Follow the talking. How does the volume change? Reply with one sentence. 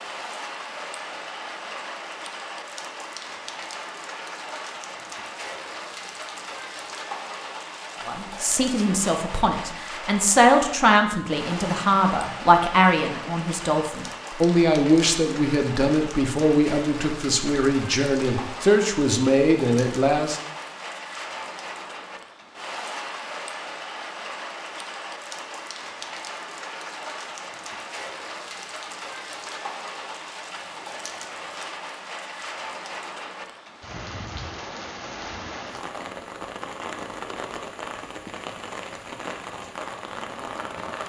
The loudness of the talking stays about the same.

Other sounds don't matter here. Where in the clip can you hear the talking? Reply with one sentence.
The talking can be heard from 8.1 to 20.4 s.